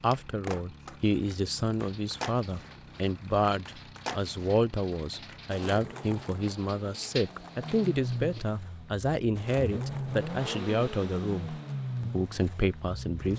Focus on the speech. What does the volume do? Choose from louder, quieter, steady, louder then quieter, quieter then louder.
steady.